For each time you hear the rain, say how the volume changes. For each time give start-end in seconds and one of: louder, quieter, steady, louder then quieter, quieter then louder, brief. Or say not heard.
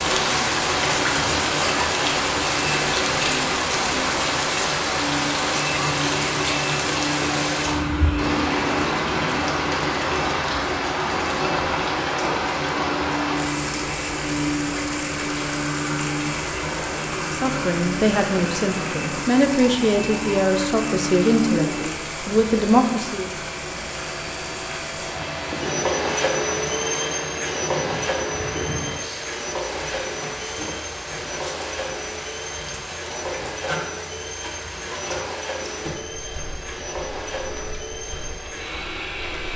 0.0-39.5 quieter.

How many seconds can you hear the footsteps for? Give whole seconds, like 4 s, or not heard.
not heard.